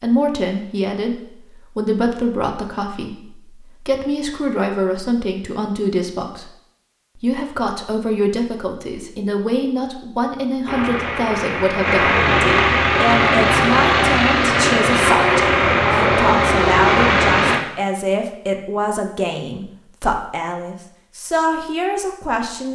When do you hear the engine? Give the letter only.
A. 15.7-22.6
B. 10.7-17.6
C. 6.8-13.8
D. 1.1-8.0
B.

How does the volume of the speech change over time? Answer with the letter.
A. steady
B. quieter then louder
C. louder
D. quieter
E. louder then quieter
A.